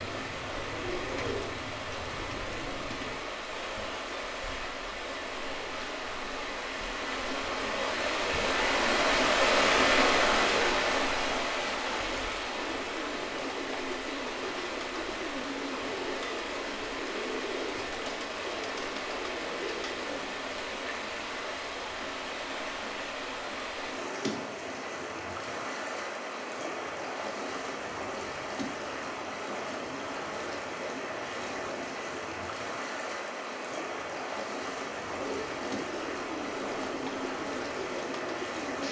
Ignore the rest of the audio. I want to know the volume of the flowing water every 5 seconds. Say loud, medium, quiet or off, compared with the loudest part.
medium, loud, loud, medium, medium, medium, medium, medium.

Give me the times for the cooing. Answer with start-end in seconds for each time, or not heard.
0.0-3.2, 12.6-20.4, 35.0-38.8.